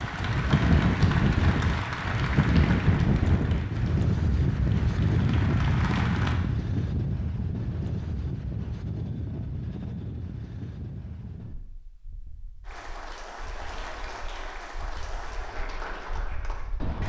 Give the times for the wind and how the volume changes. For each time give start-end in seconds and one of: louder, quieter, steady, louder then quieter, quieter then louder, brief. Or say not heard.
0.0-17.0 quieter.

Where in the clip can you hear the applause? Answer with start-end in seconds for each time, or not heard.
0.0-6.4, 12.7-17.0.